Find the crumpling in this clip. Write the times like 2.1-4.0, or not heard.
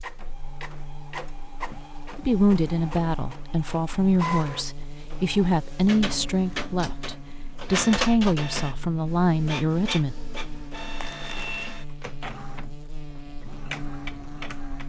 11.0-11.7.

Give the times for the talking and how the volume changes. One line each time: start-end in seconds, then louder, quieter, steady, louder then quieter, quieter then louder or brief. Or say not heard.
2.1-10.2 steady.